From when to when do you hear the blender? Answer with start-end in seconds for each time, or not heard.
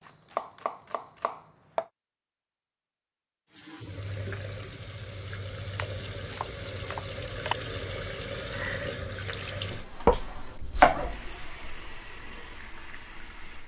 not heard.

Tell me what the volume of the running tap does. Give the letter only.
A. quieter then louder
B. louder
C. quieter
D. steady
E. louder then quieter
E.